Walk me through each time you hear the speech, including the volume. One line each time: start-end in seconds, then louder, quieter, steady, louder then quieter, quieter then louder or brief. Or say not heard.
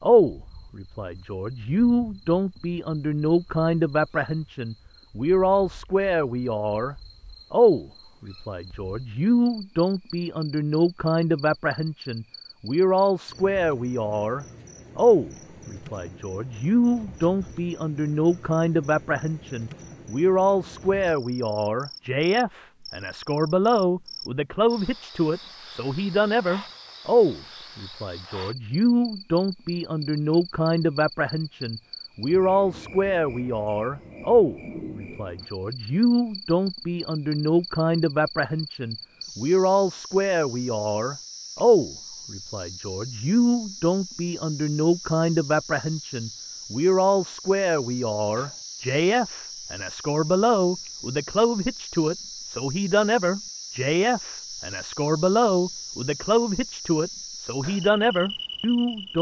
0.0-59.1 steady.